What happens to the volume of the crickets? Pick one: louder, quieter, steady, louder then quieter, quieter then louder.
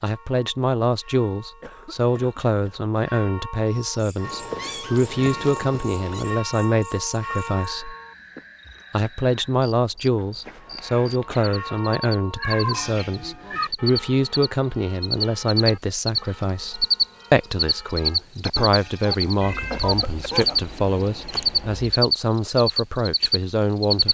louder.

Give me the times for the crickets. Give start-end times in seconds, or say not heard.
3.8-24.0.